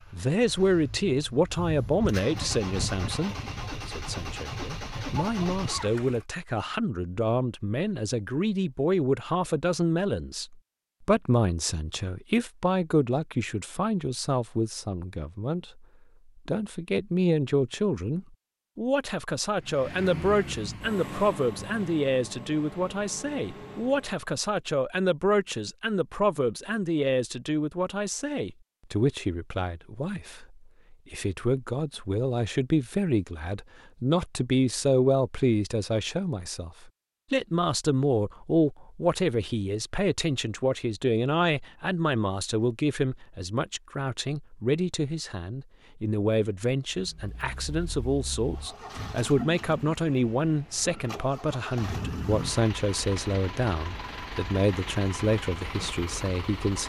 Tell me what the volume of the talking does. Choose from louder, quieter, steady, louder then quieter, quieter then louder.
steady.